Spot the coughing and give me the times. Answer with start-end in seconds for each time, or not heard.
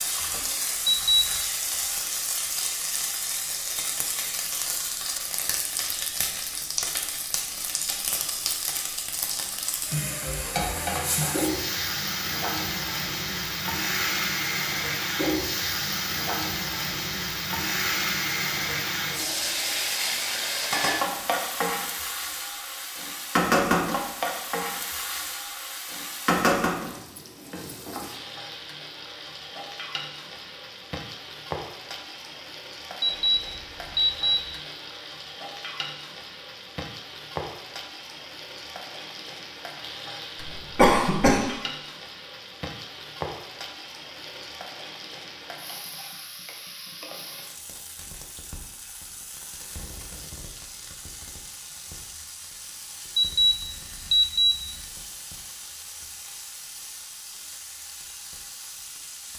40.4-41.5.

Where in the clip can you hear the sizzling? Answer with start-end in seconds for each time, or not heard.
0.0-59.3.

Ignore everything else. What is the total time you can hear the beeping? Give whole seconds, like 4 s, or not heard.
4 s.